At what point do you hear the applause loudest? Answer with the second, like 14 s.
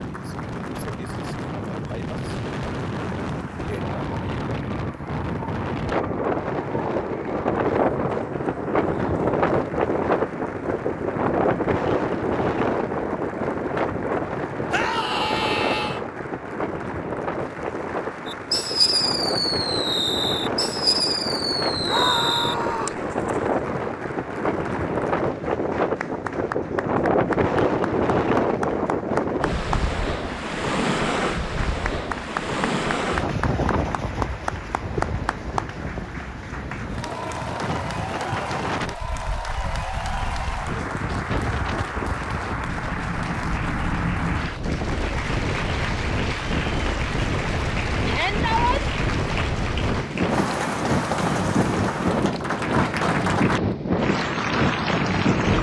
53 s.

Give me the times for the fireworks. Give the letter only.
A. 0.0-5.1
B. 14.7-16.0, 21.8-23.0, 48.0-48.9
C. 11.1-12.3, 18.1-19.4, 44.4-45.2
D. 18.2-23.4
D.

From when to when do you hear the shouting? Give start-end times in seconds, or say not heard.
14.7-16.0, 21.8-23.0, 48.0-48.9.